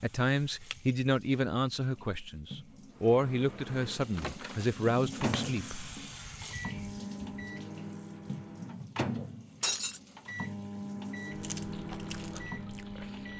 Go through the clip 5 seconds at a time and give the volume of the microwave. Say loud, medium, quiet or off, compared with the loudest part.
medium, loud, loud.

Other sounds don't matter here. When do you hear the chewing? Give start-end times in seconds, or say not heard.
11.3-13.3.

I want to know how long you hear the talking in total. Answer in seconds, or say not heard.
6 s.